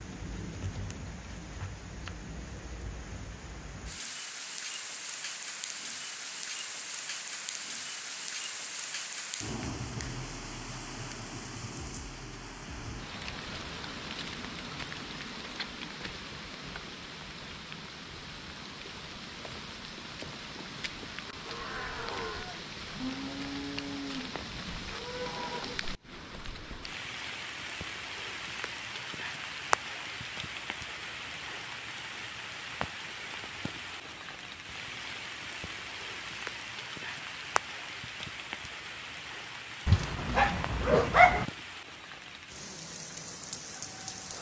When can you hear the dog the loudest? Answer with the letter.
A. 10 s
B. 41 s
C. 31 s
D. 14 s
B.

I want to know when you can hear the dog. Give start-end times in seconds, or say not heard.
39.9-41.5.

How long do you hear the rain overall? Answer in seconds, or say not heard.
44 s.